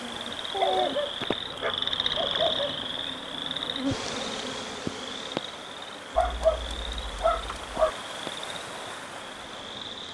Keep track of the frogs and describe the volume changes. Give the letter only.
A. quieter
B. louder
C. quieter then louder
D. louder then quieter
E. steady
A.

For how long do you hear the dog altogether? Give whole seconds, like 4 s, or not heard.
4 s.